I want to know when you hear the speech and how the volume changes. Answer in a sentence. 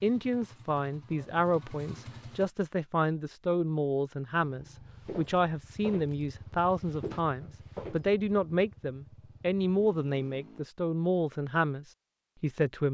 The speech can be heard from 0.0 to 12.8 s, at a steady volume.